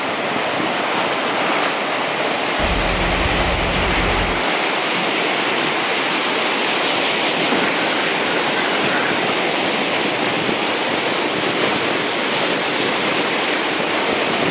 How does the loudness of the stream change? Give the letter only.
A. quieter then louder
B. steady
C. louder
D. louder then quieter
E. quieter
B.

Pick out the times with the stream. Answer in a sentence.
You can hear the stream from 0.0 to 14.4 s.